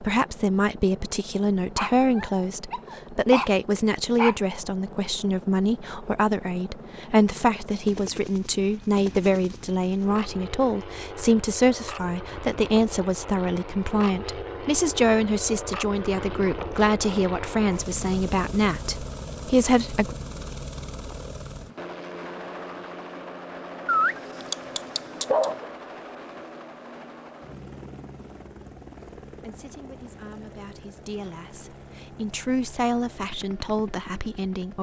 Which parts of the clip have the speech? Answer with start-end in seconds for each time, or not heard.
0.0-20.1, 29.3-34.7.